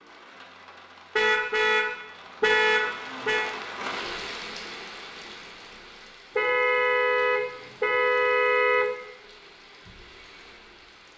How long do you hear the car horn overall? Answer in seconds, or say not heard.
5 s.